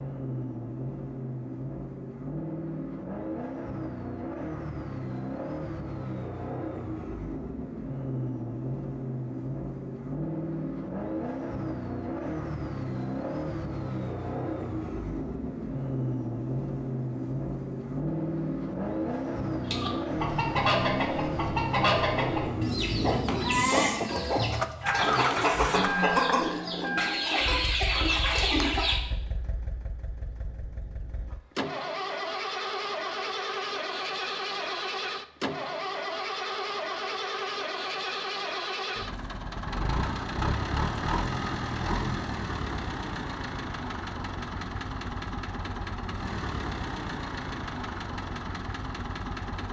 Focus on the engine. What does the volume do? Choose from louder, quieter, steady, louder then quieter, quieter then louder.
steady.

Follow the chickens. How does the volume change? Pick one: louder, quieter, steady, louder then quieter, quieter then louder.
steady.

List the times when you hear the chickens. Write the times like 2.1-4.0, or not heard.
19.6-29.0.